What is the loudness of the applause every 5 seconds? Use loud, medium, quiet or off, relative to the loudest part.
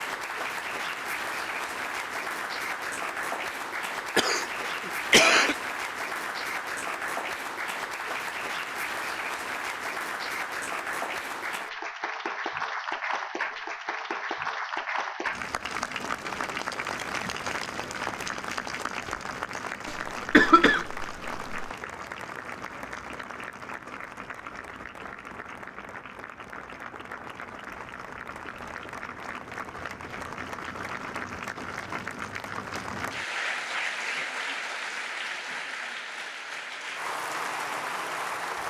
loud, loud, loud, loud, medium, medium, loud, loud.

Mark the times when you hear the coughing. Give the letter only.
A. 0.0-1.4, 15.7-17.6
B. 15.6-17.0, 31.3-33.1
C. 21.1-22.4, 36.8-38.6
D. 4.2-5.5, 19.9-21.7
D.